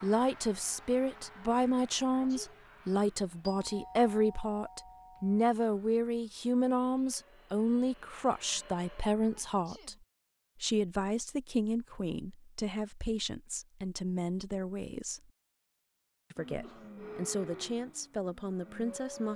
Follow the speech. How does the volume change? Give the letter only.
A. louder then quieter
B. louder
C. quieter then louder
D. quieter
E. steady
D.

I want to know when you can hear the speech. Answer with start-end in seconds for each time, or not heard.
0.0-9.9, 10.6-15.3, 16.3-19.3.